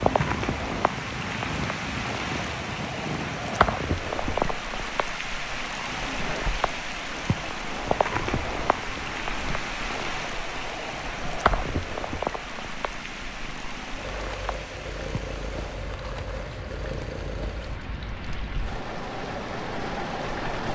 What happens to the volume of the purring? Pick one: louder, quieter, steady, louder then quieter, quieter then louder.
quieter then louder.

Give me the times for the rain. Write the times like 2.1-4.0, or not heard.
0.0-20.6.